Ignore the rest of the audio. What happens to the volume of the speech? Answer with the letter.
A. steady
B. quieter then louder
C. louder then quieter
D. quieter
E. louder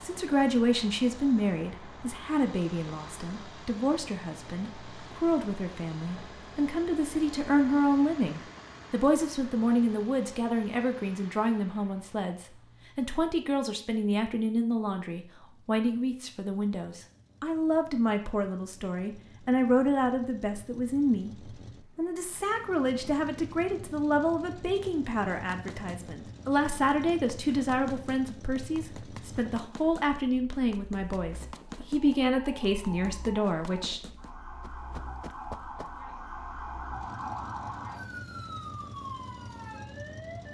A.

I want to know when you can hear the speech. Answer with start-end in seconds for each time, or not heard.
0.0-34.0.